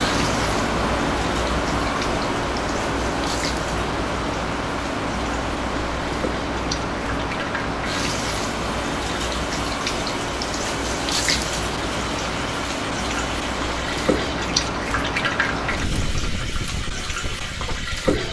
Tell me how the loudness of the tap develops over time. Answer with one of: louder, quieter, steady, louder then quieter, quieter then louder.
louder.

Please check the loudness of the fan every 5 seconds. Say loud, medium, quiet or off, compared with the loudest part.
loud, loud, loud, medium.